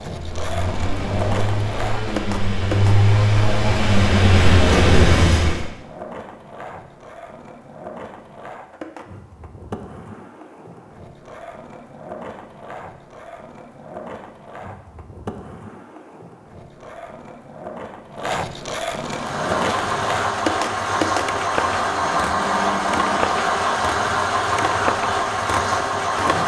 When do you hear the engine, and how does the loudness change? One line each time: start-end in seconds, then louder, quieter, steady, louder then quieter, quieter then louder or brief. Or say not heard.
0.1-5.7 louder
18.9-26.4 steady.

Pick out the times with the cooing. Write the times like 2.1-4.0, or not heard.
not heard.